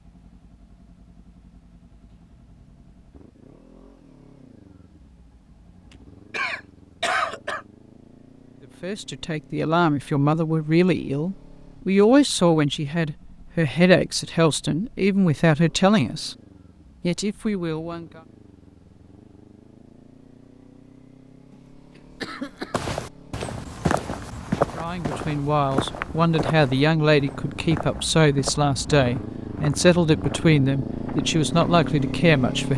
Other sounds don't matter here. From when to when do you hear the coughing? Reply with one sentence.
You can hear the coughing from 6.3 to 7.7 s and from 21.5 to 22.8 s.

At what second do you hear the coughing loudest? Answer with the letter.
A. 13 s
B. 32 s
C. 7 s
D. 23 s
C.